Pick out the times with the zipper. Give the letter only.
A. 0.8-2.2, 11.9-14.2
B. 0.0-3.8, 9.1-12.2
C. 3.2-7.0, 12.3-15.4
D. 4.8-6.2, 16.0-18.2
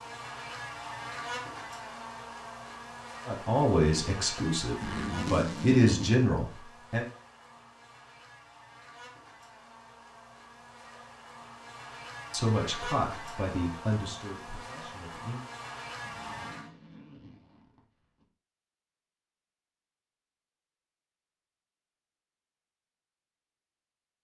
D.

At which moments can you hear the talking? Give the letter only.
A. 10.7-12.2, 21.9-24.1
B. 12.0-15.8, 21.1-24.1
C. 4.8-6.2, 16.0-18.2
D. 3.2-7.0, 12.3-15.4
D.